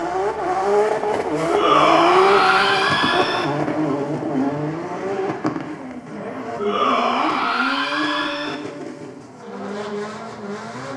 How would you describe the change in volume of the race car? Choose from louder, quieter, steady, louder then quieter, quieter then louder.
quieter.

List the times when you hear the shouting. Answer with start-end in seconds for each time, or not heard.
1.4-3.5, 6.5-8.6.